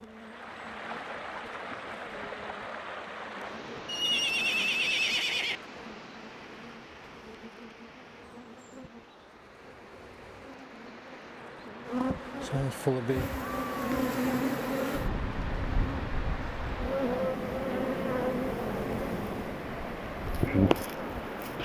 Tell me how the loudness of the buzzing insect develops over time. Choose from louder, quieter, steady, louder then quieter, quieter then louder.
louder.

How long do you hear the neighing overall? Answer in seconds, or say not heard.
2 s.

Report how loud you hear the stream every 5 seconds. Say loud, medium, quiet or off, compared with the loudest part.
loud, medium, loud, loud, loud.